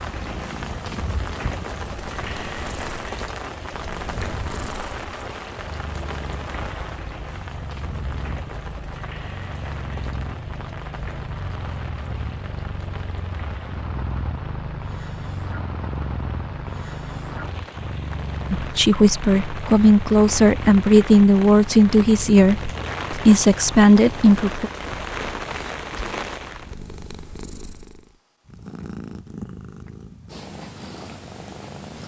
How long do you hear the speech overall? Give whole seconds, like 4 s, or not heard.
6 s.